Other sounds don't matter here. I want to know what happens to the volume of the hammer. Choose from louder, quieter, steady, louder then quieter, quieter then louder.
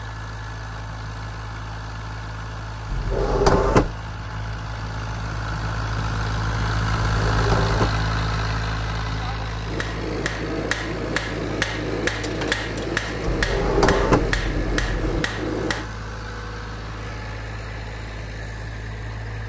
steady.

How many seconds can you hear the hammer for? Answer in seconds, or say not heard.
6 s.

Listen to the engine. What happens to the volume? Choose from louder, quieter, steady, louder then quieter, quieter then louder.
louder then quieter.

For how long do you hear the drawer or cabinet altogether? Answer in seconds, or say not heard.
4 s.